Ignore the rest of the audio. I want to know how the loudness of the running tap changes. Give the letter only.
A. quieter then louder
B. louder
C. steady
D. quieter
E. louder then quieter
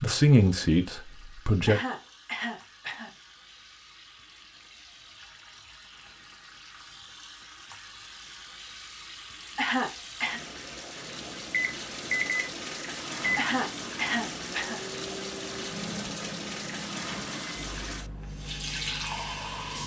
B.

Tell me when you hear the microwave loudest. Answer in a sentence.
The loudest moment of the microwave is at 12 seconds.